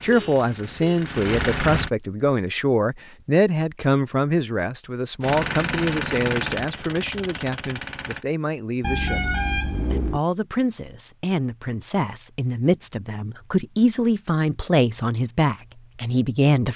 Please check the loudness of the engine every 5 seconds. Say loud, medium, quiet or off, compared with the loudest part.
loud, loud, off, off.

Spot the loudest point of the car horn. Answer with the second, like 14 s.
9 s.